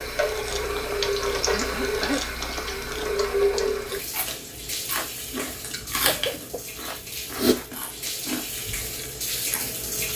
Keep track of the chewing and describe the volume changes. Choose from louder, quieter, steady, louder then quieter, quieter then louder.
louder then quieter.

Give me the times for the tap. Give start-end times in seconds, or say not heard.
0.0-10.1.